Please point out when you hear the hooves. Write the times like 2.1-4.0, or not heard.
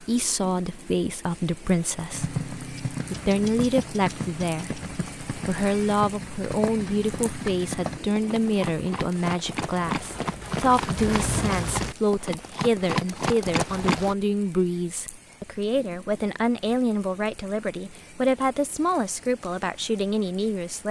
2.1-14.2.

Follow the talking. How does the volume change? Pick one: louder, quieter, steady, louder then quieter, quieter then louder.
steady.